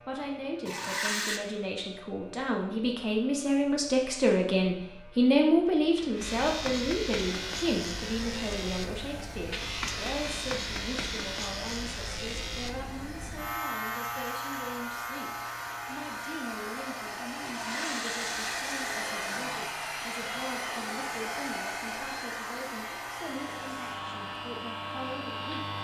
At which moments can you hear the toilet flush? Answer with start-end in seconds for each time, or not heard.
0.7-1.4, 17.4-18.9.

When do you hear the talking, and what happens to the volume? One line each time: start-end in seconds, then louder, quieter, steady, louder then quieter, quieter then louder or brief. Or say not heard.
0.0-25.7 quieter.